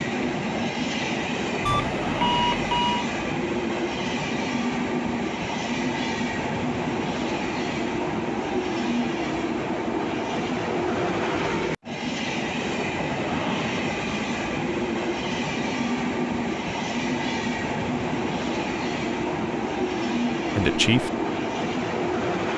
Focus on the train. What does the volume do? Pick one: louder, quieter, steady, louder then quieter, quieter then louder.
steady.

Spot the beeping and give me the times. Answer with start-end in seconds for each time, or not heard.
1.6-3.0.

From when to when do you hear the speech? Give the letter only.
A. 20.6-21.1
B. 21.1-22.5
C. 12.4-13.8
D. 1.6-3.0
A.